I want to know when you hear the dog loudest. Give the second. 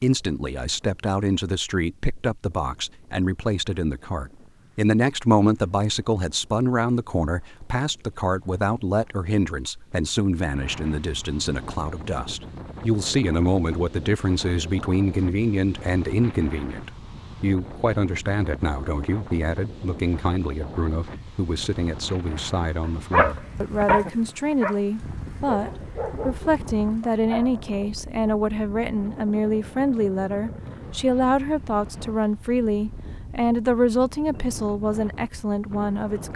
23 s.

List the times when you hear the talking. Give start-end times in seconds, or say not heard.
0.0-36.3.